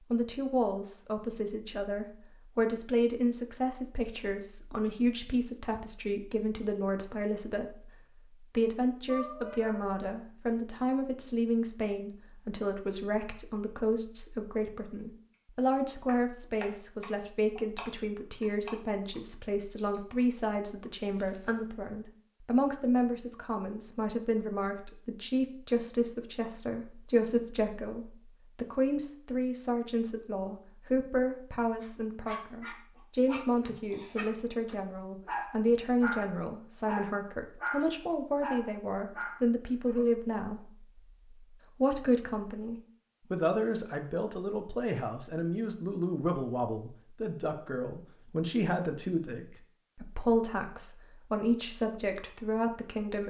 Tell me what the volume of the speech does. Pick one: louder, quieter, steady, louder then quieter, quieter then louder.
steady.